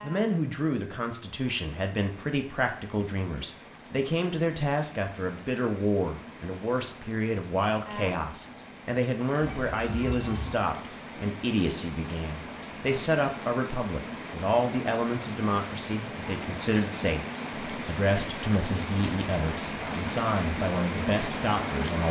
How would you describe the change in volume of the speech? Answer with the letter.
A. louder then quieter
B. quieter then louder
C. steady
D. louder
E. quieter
C.